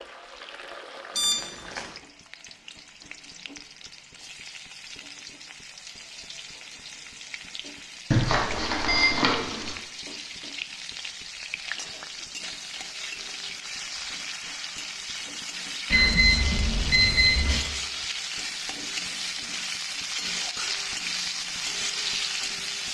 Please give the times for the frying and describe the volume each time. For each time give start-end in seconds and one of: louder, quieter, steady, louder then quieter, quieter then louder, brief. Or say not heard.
0.0-22.8 louder.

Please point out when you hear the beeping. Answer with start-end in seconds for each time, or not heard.
1.1-1.9, 8.1-9.7, 15.9-17.6.